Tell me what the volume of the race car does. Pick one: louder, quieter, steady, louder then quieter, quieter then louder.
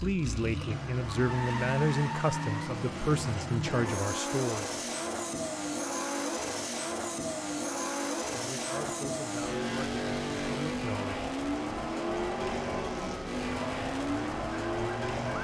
steady.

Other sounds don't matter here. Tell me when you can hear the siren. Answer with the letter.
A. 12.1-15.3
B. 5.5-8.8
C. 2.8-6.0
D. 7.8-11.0
A.